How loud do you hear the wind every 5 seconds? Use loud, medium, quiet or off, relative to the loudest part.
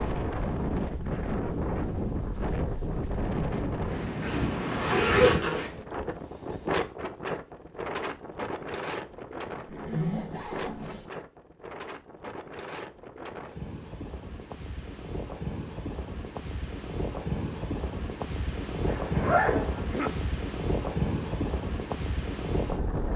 loud, loud, medium, loud, loud.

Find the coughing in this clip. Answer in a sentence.
The coughing can be heard from 19.8 to 20.3 s.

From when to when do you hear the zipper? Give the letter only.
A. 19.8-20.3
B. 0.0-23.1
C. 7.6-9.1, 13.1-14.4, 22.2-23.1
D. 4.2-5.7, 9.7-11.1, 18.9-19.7
D.